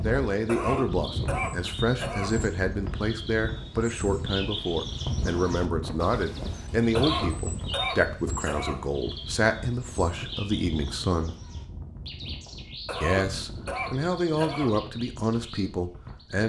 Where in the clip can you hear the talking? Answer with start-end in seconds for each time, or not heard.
0.0-11.3, 13.0-16.4.